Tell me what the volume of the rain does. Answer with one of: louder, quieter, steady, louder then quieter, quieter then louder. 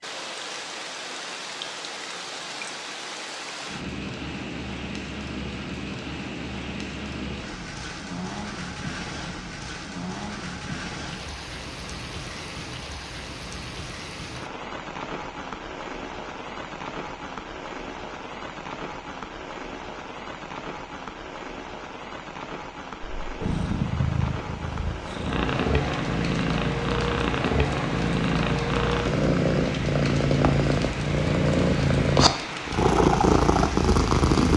steady.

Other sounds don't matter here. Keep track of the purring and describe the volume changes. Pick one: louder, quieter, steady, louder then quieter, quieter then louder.
louder.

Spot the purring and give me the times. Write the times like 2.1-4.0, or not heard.
23.2-34.5.